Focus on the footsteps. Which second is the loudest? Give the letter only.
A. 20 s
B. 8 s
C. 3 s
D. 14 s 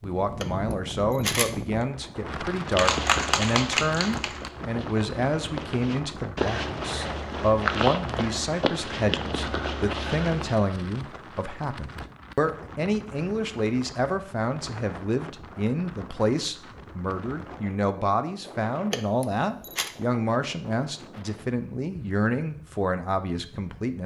B.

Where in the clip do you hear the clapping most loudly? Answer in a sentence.
The loudest moment of the clapping is at 3 seconds.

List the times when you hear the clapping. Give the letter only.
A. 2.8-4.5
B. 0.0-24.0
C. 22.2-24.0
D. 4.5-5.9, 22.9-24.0
A.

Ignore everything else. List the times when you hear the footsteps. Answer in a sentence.
You can hear the footsteps from 2.6 to 10.7 s.